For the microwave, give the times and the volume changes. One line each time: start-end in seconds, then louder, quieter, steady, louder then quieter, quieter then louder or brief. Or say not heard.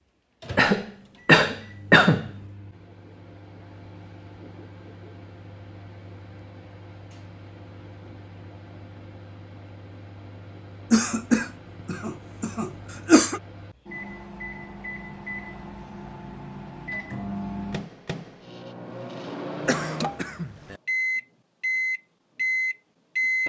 0.4-23.4 louder.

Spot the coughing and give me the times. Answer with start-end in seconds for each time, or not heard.
0.6-2.3, 10.9-13.4, 19.6-20.8.